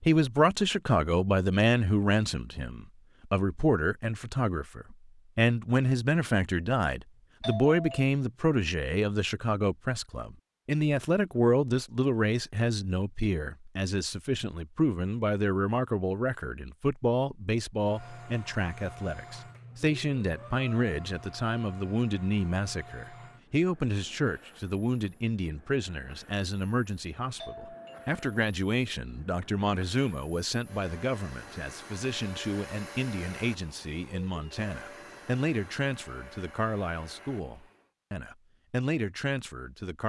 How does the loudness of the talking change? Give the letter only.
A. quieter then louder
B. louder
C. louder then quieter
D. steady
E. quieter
E.